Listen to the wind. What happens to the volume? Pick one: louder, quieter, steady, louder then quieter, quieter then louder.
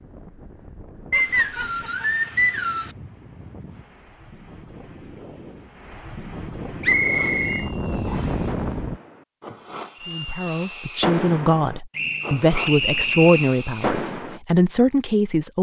louder.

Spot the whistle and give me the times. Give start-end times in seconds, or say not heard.
1.1-2.9, 6.8-8.4, 11.9-13.6.